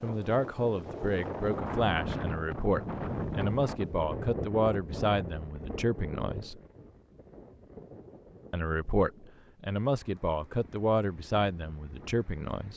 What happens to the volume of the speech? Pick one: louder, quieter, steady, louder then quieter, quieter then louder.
steady.